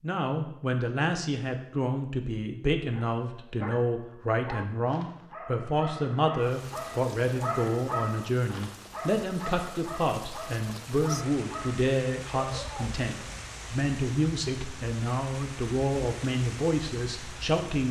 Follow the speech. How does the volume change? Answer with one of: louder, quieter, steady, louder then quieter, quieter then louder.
steady.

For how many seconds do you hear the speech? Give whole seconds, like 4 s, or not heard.
18 s.